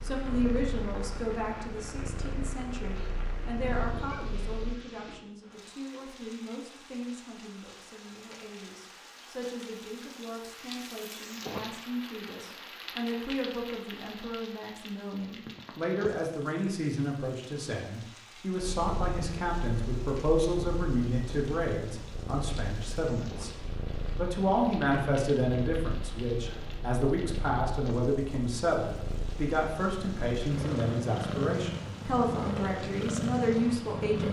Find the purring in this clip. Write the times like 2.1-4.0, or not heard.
0.0-4.8, 18.6-34.2.